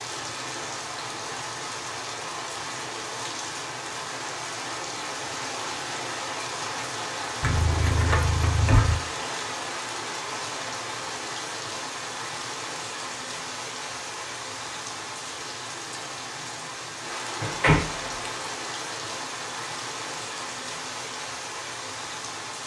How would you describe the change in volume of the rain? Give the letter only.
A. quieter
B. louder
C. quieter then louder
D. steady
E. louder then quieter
D.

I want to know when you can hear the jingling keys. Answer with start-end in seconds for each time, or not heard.
7.4-9.0, 17.4-18.2.